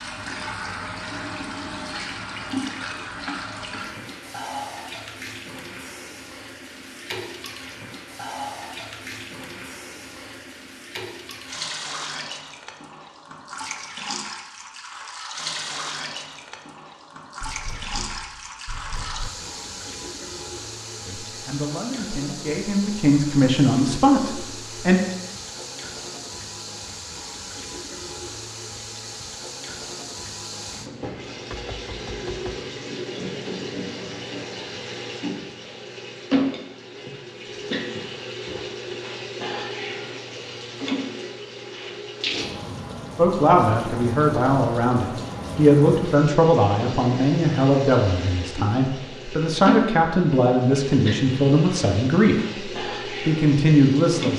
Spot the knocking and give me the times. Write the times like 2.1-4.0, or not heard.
17.4-19.3, 31.5-32.6.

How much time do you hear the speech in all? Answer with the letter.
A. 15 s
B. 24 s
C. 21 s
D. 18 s
A.